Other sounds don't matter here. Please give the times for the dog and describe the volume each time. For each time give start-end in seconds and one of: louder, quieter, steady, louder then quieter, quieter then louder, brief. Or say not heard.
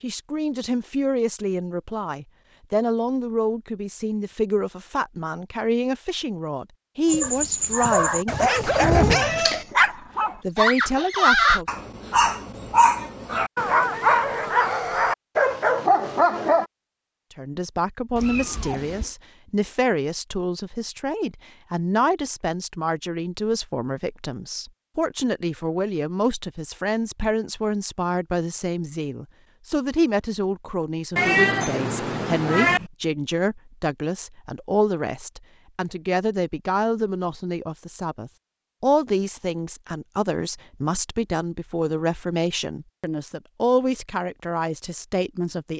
7.0-16.6 steady.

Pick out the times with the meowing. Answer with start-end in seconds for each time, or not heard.
8.9-9.6, 18.1-19.1, 31.1-32.9.